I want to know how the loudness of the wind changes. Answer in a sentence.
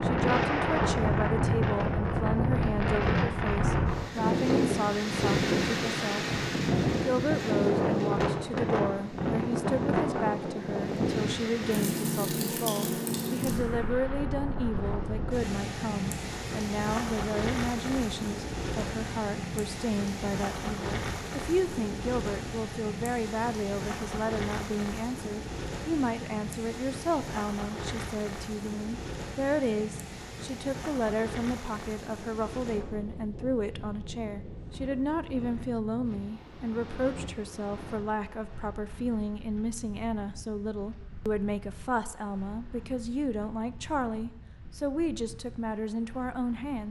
The loudness of the wind goes down.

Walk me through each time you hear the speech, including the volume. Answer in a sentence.
You can hear the speech from 0.0 to 6.2 s, at a steady volume; and from 7.0 to 46.8 s, at a steady volume.